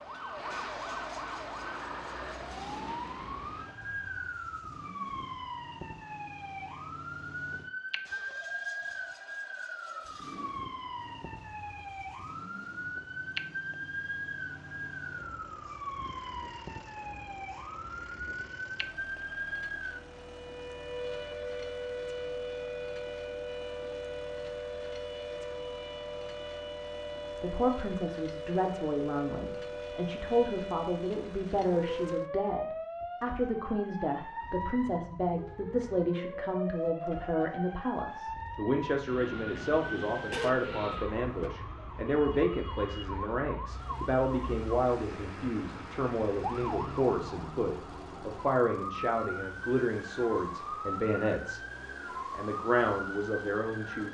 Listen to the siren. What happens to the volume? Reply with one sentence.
The loudness of the siren stays about the same.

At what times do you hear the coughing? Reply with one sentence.
You can hear the coughing from 40.3 to 41.5 s.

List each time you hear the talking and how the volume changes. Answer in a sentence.
You can hear the talking from 27.4 to 51.6 s, at a steady volume; and briefly from 52.3 to 54.0 s.